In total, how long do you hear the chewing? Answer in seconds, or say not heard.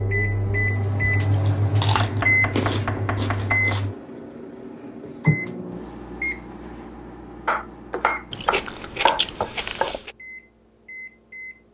5 s.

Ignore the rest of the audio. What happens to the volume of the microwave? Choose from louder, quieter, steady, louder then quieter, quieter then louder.
quieter.